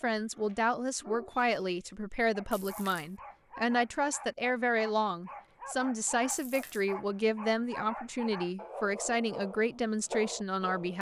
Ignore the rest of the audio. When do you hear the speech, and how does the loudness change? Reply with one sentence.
The speech can be heard from 0.0 to 10.9 s, at a steady volume.